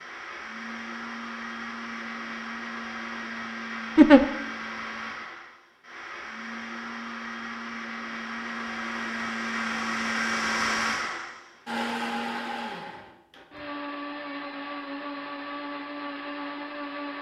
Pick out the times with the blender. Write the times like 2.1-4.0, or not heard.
0.0-17.1.